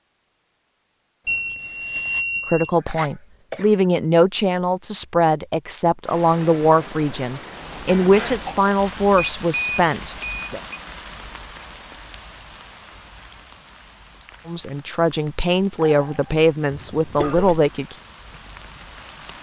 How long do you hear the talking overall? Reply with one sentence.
The talking can be heard for 12 seconds in total.